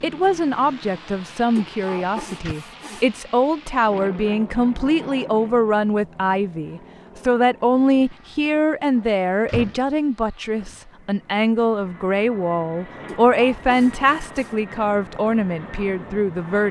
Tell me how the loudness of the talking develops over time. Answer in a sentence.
The volume of the talking stays about the same.